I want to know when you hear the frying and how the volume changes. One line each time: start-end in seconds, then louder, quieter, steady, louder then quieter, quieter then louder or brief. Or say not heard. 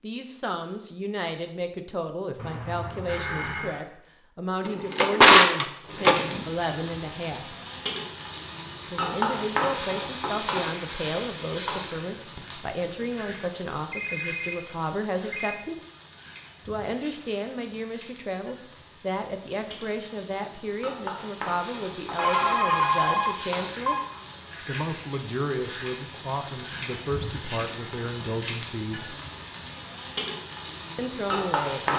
5.8-31.9 quieter then louder.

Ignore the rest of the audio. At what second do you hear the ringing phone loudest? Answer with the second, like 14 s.
23 s.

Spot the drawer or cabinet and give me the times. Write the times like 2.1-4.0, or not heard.
4.7-6.5.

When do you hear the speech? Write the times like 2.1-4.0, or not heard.
0.0-7.5, 8.9-15.8, 16.6-23.9, 24.6-29.1, 30.9-31.9.